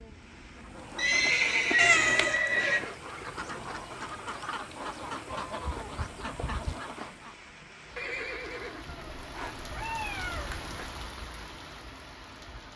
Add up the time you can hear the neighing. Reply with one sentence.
The neighing can be heard for 3 seconds in total.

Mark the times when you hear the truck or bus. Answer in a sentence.
You can't hear the truck or bus here.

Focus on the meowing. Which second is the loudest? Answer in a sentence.
The volume of the meowing peaks at 2 seconds.